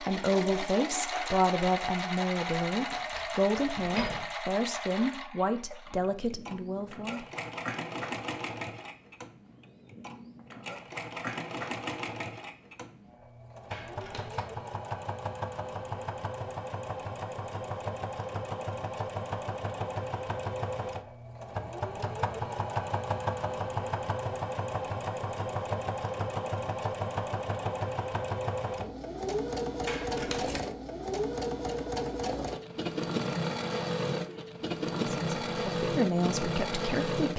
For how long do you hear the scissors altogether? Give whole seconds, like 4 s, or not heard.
3 s.